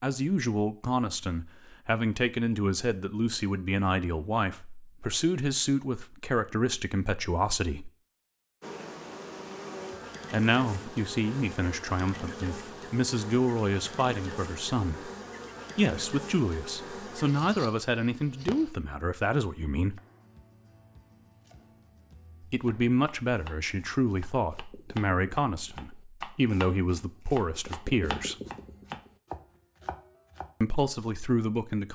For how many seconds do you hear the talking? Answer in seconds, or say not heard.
24 s.